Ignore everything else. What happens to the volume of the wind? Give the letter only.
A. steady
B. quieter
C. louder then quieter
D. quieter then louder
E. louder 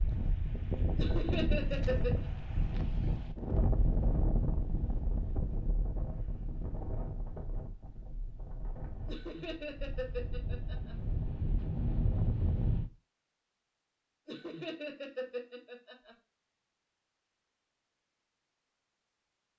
D.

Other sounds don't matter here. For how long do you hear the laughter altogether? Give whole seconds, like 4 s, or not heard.
5 s.